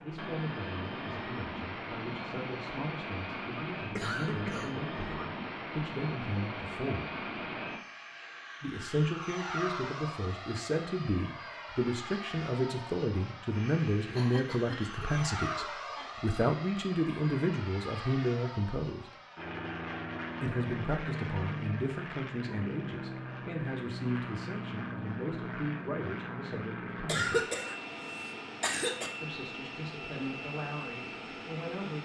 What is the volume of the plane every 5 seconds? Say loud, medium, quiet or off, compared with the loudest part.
loud, loud, medium, loud, loud, loud, loud.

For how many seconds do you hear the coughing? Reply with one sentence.
You can hear the coughing for 5 seconds altogether.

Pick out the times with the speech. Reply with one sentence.
You can hear the speech from 0.0 to 7.1 s, from 8.6 to 19.1 s, from 20.4 to 27.5 s and from 29.2 to 31.9 s.